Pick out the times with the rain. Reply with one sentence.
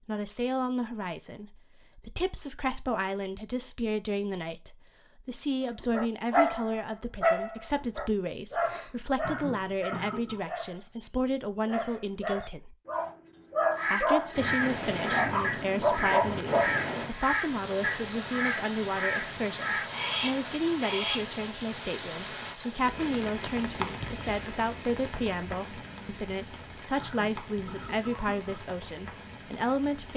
You can hear the rain from 14.3 to 30.1 s.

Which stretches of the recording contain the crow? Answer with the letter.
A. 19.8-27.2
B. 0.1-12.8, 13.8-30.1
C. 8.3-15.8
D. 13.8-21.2
D.